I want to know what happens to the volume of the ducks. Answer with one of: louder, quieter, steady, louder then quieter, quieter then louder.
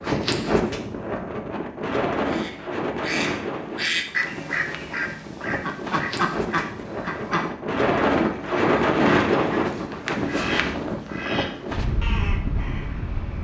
quieter.